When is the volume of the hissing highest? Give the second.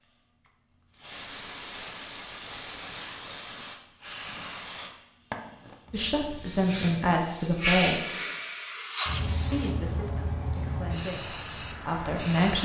8 s.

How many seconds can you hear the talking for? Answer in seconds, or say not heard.
5 s.